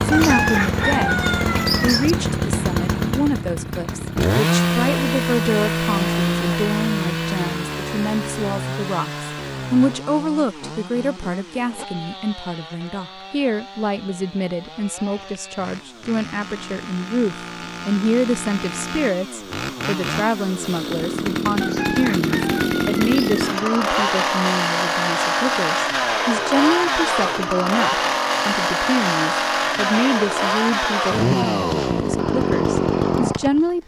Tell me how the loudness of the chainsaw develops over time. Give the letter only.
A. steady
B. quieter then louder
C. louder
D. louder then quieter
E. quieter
B.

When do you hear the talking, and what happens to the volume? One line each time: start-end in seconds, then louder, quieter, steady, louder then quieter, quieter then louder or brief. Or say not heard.
0.0-33.8 steady.